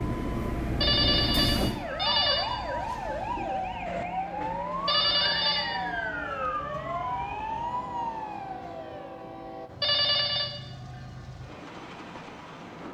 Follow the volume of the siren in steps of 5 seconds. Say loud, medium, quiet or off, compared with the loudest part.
loud, loud, off.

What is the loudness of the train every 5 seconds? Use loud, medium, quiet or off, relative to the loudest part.
loud, medium, medium.